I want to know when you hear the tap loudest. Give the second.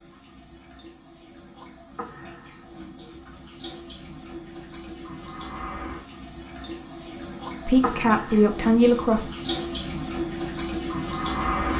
11 s.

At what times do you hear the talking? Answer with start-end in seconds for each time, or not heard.
7.7-9.3.